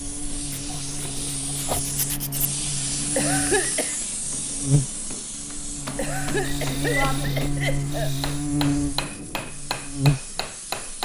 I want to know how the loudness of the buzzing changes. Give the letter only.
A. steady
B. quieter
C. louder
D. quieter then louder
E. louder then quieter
C.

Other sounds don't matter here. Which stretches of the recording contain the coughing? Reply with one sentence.
You can hear the coughing from 3.1 to 4.0 s and from 6.0 to 8.1 s.